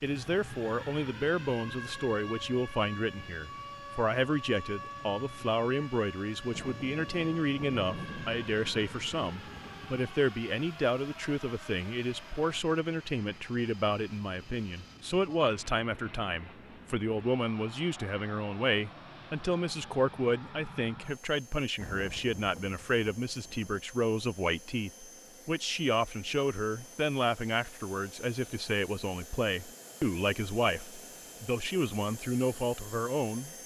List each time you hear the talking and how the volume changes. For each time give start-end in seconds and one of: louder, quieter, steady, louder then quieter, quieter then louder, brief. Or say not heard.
0.0-33.5 steady.